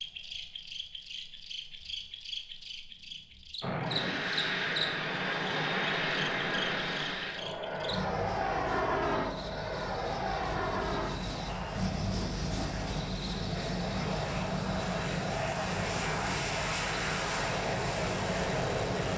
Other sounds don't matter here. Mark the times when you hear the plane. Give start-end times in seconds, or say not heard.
3.6-19.1.